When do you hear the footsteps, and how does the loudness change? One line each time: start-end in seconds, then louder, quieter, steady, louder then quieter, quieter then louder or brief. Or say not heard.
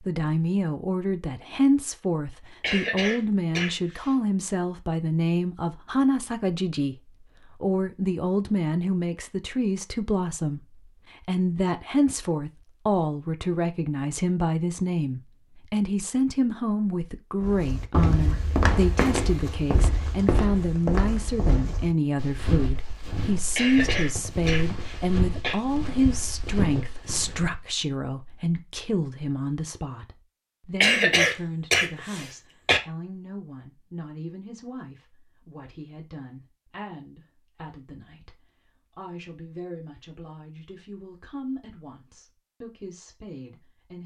17.4-27.6 quieter.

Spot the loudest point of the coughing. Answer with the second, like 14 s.
31 s.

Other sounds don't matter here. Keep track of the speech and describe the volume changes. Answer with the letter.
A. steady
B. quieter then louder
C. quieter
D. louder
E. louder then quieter
C.